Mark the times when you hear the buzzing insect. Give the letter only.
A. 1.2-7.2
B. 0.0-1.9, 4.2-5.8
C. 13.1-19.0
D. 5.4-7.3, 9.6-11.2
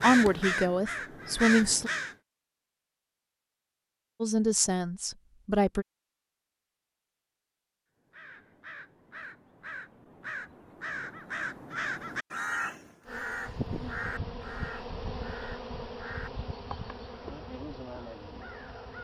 C.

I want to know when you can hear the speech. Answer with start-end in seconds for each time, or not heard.
0.0-1.9, 4.2-5.8.